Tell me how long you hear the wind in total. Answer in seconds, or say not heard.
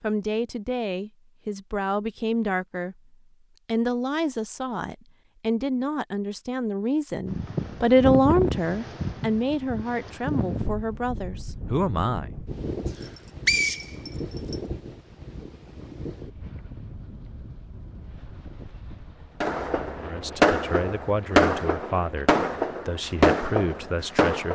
17 s.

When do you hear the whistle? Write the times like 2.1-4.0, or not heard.
13.0-14.6.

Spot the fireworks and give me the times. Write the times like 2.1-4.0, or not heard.
19.4-24.5.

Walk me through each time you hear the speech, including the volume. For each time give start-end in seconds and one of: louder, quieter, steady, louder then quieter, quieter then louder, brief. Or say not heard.
0.0-12.3 louder then quieter
19.9-24.5 steady.